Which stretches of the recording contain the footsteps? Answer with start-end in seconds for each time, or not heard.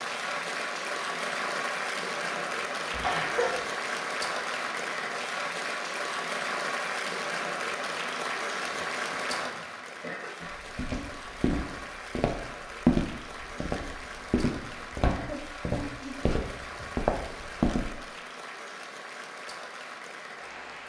10.5-17.9.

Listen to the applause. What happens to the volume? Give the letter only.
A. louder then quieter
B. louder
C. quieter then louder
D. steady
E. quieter
E.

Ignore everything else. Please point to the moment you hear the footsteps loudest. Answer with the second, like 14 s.
13 s.